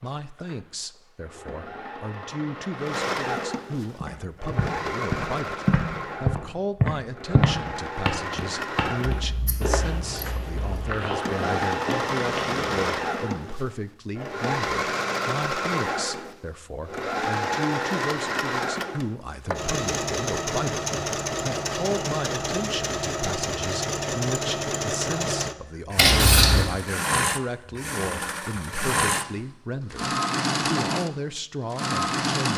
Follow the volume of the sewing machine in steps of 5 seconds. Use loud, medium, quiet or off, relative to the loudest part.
medium, medium, loud, loud, loud, loud, loud.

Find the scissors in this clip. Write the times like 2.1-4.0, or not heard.
9.1-10.9, 25.9-26.6.